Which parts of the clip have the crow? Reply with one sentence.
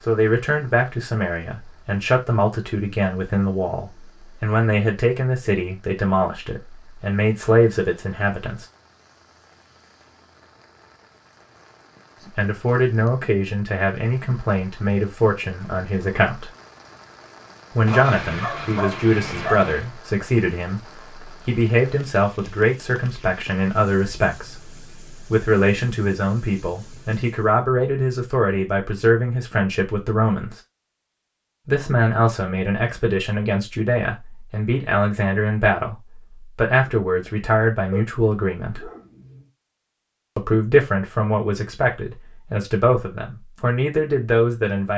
The crow can't be heard in this clip.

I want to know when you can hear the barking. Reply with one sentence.
You can hear the barking from 17.9 to 19.9 s and from 37.9 to 39.5 s.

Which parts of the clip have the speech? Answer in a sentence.
The speech can be heard from 0.1 to 8.7 s, from 12.2 to 16.5 s, from 17.8 to 30.6 s, from 31.6 to 38.9 s and from 40.4 to 44.9 s.